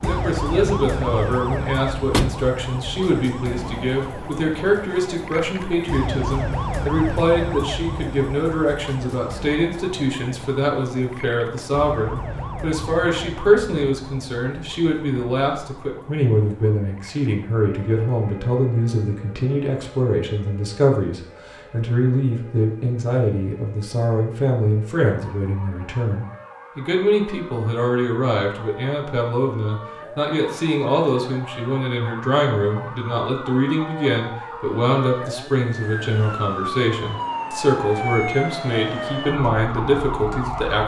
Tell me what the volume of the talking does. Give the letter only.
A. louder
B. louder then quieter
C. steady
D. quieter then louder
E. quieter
C.